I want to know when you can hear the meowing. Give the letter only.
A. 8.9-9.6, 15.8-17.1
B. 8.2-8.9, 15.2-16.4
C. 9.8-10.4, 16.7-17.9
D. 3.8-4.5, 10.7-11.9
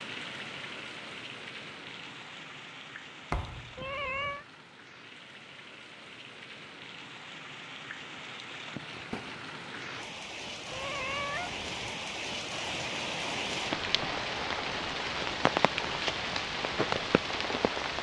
D.